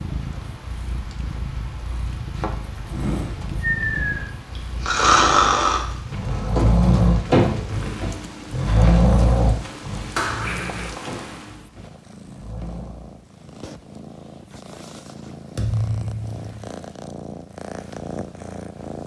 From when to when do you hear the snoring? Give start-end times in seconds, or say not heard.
2.9-13.2.